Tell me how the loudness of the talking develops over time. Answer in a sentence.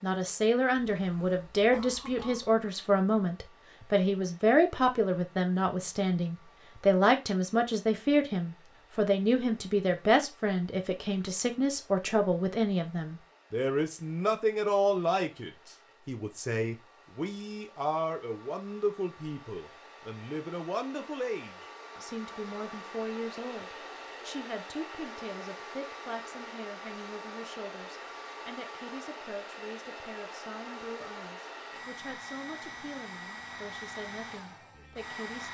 The loudness of the talking goes down.